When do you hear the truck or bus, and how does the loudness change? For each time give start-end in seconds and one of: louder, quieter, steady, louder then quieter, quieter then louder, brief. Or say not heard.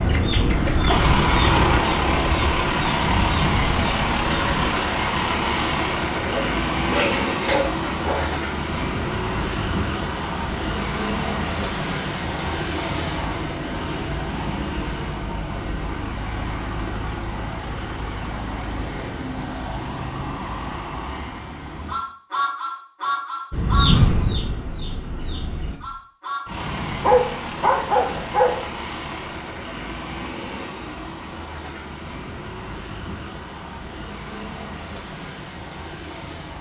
0.0-36.5 quieter.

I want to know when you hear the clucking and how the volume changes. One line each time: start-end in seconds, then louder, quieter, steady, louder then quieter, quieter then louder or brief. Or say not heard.
0.0-4.6 quieter
23.5-25.8 brief.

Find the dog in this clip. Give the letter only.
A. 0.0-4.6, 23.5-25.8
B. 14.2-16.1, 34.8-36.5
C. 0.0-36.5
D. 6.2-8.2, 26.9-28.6
D.